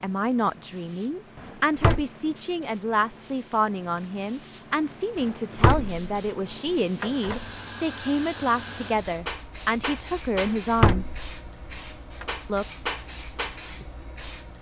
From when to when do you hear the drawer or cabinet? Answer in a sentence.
The drawer or cabinet can be heard from 1.4 to 2.0 s, from 5.2 to 6.0 s, from 7.0 to 7.5 s and from 10.3 to 11.2 s.